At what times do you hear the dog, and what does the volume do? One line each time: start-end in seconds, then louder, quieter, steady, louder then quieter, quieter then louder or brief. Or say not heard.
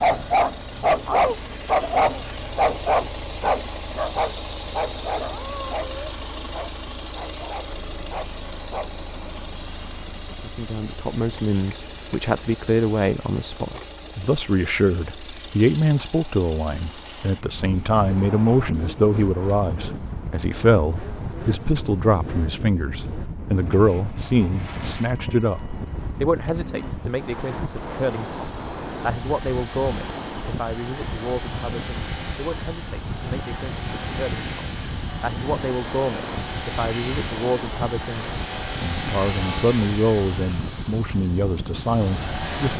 0.0-8.9 quieter.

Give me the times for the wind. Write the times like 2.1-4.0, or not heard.
17.4-42.7.